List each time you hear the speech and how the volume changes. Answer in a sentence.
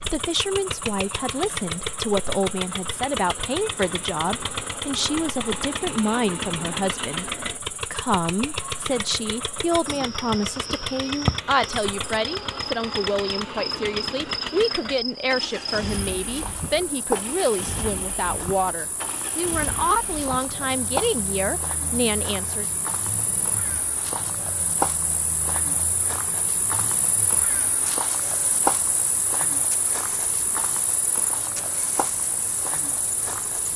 The speech can be heard from 0.0 to 22.6 s, at a steady volume.